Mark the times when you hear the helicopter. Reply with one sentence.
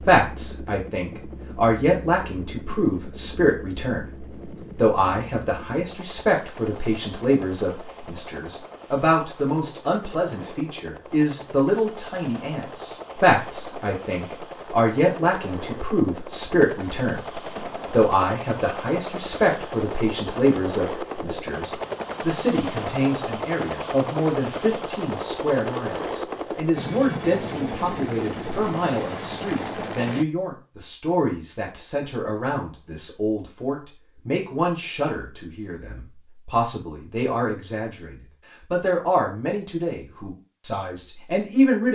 You can hear the helicopter from 0.0 to 30.2 s.